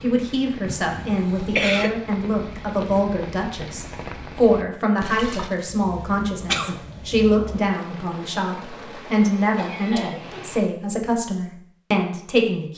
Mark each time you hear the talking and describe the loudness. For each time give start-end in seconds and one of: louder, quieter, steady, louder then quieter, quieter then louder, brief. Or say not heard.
0.0-12.7 steady.